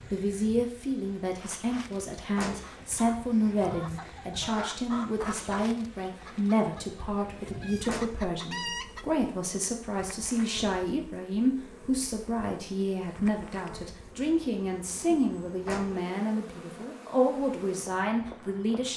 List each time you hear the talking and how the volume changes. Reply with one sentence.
You can hear the talking from 0.1 to 18.9 s, at a steady volume.